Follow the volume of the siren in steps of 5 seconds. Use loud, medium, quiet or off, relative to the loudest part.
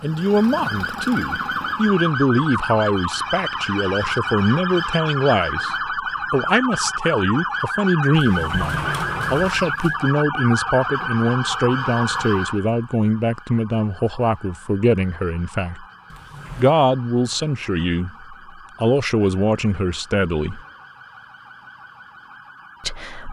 loud, loud, loud, quiet, quiet.